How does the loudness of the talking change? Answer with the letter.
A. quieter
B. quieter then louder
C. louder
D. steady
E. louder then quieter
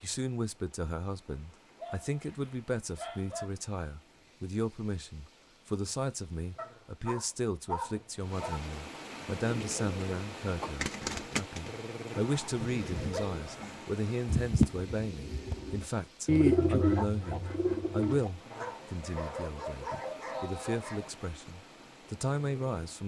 D.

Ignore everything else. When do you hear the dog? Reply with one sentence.
You can hear the dog from 1.8 to 3.5 s, from 6.5 to 8.6 s, from 12.1 to 13.7 s and from 18.5 to 21.1 s.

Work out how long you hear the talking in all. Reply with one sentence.
You can hear the talking for 23 seconds altogether.